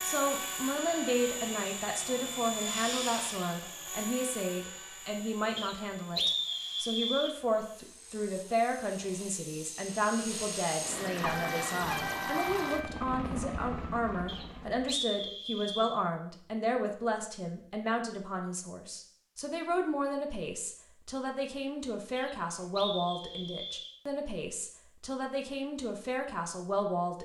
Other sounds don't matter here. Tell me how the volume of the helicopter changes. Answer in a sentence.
The loudness of the helicopter goes down, then up.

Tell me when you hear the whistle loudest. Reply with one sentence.
The volume of the whistle peaks at 6 seconds.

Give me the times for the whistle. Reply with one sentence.
The whistle can be heard from 5.5 to 7.3 s, from 14.2 to 15.9 s and from 22.1 to 23.9 s.